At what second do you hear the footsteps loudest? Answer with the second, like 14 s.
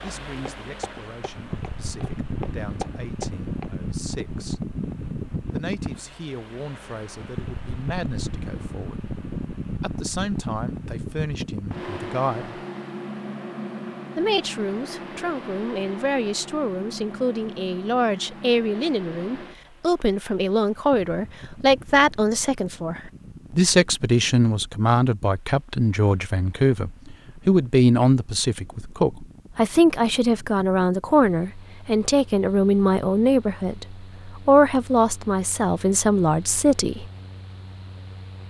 3 s.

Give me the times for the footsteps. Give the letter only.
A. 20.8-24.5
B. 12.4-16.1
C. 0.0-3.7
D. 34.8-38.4
C.